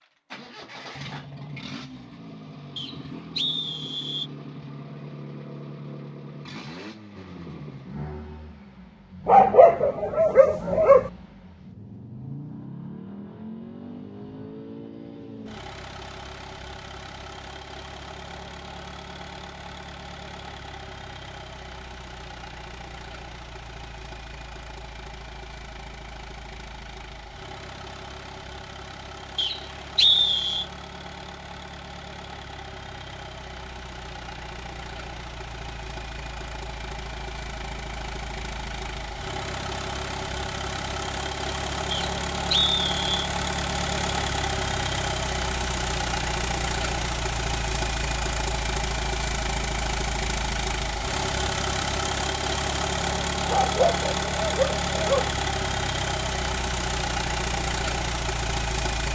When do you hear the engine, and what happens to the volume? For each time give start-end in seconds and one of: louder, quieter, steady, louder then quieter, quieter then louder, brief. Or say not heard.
0.0-59.0 louder.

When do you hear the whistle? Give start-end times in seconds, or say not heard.
2.8-4.3, 29.4-30.6, 41.9-43.3.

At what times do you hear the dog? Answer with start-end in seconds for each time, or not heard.
9.2-11.1, 53.5-55.3.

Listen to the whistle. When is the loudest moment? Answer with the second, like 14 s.
30 s.